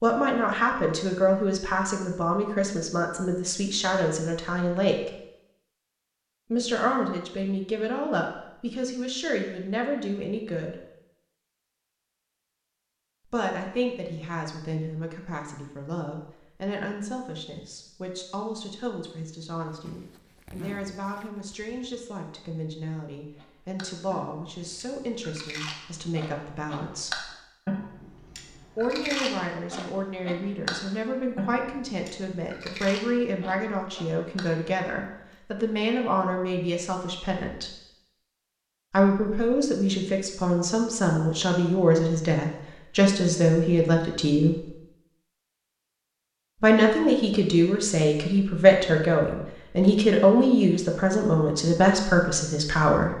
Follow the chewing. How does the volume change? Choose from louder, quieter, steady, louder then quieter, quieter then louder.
louder then quieter.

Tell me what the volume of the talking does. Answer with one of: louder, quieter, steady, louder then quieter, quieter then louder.
quieter then louder.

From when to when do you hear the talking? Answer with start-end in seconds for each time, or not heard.
0.0-5.1, 6.5-10.8, 13.2-27.2, 28.8-37.8, 38.9-44.7, 46.6-53.1.